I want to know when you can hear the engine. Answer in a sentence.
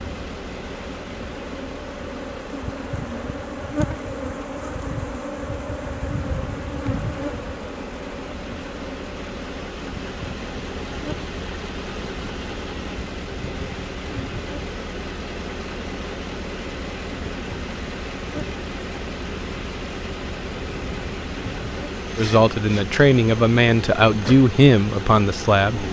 The engine can be heard from 0.0 to 25.8 s.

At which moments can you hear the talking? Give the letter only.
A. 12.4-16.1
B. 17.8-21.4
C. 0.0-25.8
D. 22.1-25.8
D.